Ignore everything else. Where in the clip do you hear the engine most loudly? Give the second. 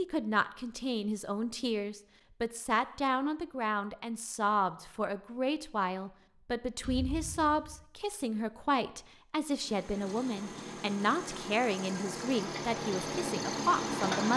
14 s.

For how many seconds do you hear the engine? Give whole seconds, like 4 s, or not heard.
5 s.